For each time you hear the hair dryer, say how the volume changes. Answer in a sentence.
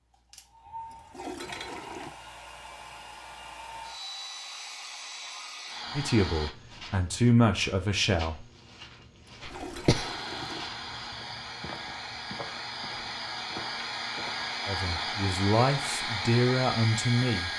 The hair dryer can be heard from 0.0 to 6.5 s, getting louder; and from 9.9 to 17.5 s, getting louder.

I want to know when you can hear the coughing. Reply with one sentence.
You can hear the coughing from 9.4 to 10.1 s.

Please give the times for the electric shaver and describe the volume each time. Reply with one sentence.
You can't hear the electric shaver here.